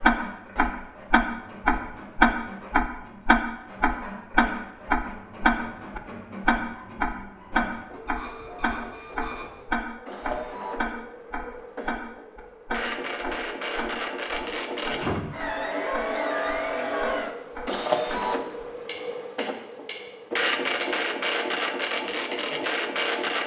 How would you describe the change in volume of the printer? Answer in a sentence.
The volume of the printer goes up.